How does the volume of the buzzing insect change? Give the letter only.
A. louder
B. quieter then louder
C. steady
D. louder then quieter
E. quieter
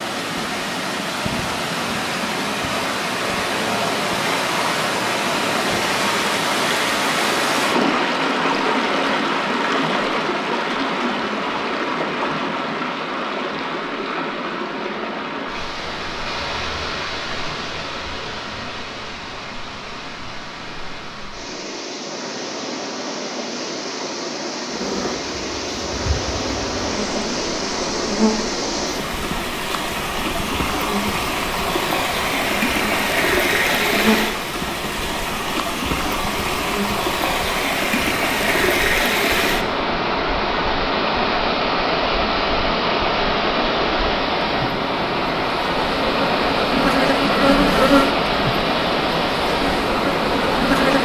A.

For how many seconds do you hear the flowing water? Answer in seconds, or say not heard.
51 s.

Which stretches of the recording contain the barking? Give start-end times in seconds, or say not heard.
not heard.